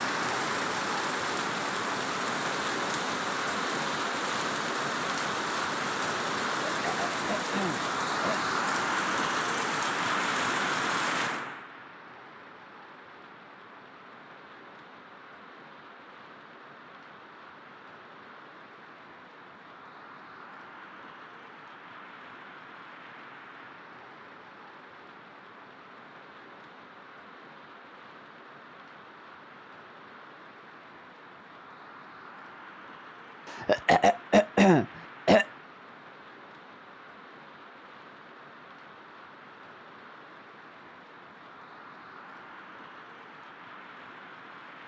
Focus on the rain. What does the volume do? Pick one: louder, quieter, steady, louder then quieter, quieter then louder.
quieter.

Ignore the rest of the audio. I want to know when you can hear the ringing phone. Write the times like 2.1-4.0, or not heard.
not heard.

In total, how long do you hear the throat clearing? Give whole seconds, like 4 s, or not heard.
4 s.